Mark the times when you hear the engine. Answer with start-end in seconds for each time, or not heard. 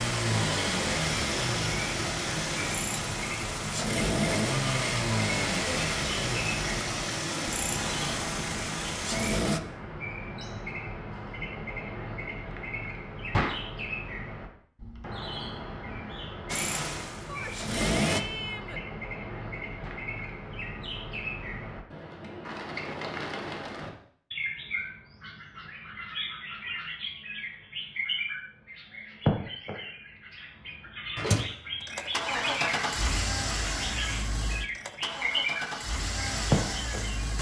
0.0-9.6, 16.4-18.2, 31.1-37.3.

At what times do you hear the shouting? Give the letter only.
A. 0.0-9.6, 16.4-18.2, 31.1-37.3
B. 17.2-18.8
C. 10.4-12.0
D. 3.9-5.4
B.